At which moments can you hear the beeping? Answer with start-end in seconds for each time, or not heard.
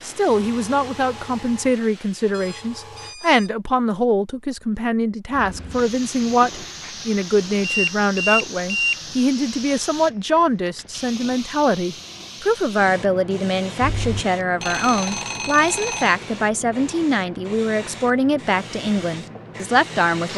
2.3-3.5, 7.2-9.0, 13.8-16.1.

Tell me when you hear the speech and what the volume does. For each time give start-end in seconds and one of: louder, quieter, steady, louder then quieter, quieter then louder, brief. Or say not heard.
0.0-20.3 steady.